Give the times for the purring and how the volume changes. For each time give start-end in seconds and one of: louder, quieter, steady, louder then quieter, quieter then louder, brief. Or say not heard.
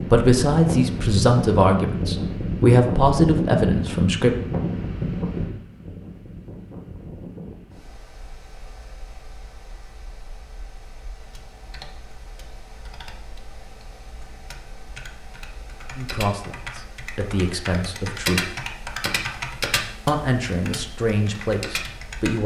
not heard.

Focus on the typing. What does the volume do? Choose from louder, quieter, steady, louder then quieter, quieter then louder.
louder then quieter.